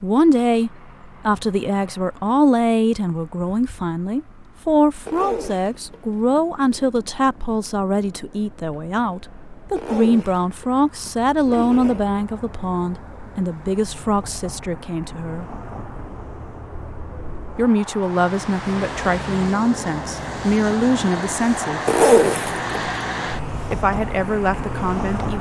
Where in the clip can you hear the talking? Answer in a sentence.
The talking can be heard from 0.0 to 15.6 s, from 17.6 to 21.8 s and from 23.7 to 25.3 s.